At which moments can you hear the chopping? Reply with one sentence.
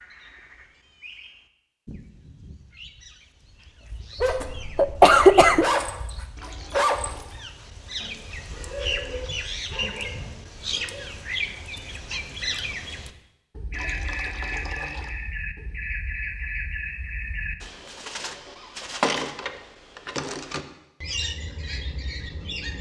The chopping can't be heard in this clip.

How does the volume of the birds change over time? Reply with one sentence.
The volume of the birds goes up.